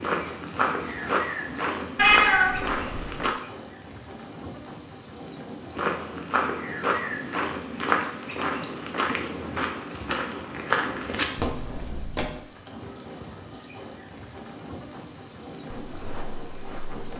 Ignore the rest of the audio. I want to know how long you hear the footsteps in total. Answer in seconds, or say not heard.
11 s.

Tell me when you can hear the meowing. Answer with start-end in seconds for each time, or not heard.
1.9-3.3.